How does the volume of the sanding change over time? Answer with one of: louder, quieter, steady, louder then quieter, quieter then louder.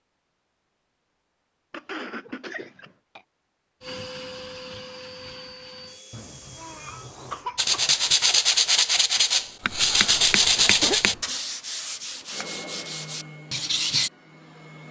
quieter.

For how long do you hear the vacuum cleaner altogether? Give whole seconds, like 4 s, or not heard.
6 s.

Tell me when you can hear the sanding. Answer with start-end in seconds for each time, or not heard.
7.5-14.1.